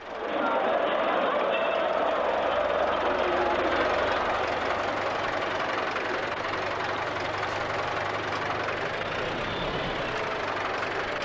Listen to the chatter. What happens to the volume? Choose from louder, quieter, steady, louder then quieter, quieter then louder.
quieter.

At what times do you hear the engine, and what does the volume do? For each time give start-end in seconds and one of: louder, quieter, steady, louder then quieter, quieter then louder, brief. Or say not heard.
0.0-11.1 louder.